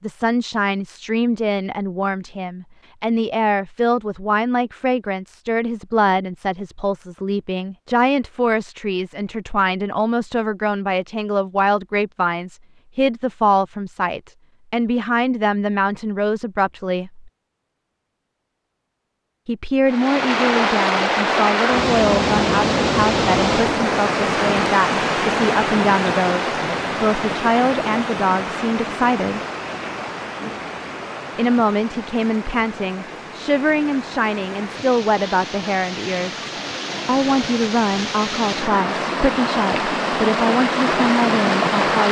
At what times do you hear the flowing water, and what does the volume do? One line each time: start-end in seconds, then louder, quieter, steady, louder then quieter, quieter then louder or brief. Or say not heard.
19.9-42.0 quieter then louder.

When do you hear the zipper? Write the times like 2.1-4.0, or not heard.
not heard.